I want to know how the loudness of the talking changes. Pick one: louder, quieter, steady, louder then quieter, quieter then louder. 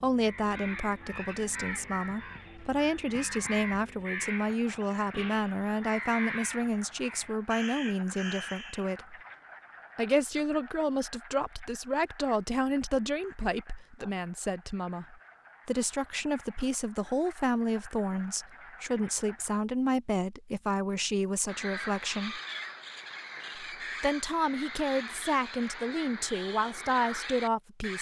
steady.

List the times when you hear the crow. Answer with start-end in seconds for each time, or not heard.
0.1-8.9, 21.4-27.9.